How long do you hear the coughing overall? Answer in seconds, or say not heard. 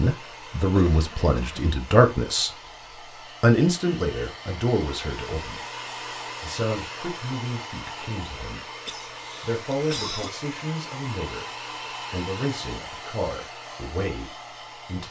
2 s.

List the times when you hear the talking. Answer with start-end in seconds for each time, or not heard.
0.0-2.5, 3.4-5.7, 6.4-8.8, 9.4-15.0.